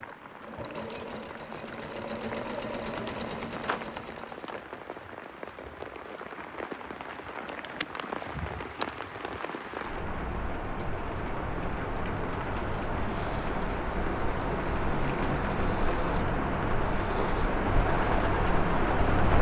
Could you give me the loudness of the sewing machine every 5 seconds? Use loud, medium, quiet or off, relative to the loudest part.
loud, off, medium, loud.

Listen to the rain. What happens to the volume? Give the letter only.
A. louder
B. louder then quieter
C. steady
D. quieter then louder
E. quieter
A.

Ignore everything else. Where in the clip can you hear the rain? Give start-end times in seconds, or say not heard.
0.0-19.3.